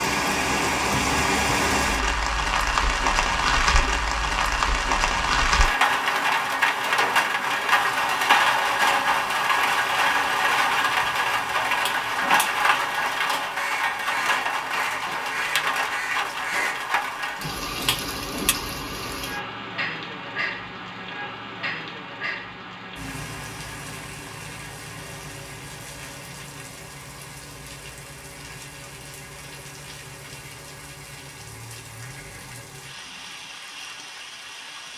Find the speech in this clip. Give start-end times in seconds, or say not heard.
not heard.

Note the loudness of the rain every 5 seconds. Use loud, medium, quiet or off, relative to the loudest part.
loud, loud, loud, medium, quiet, quiet, quiet.